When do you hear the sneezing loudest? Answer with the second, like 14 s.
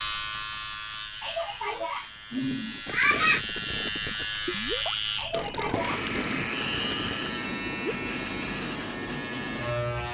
3 s.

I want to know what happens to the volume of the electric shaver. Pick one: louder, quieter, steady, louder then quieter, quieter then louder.
louder.